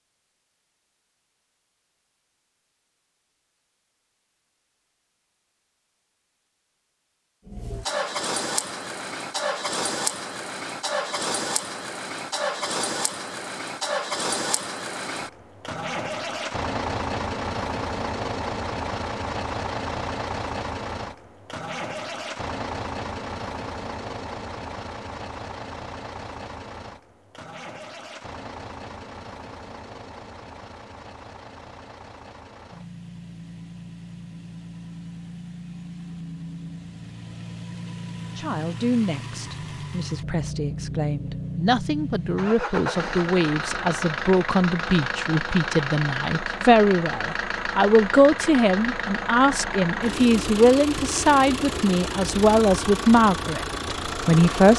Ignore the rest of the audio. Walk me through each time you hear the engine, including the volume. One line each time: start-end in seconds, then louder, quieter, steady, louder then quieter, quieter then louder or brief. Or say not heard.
7.5-54.7 quieter then louder.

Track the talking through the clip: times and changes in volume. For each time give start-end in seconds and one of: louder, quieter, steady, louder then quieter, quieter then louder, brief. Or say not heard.
38.4-54.7 louder.